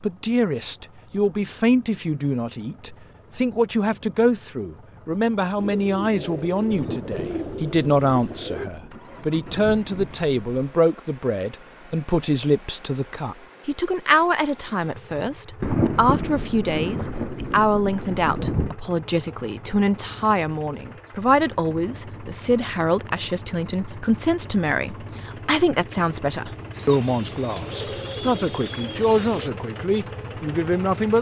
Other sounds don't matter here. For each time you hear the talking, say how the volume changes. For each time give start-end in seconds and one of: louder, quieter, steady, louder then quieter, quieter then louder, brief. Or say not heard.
0.0-31.1 steady.